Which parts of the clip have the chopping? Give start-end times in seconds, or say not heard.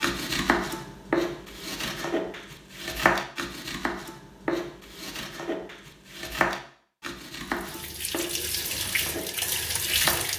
0.0-10.2.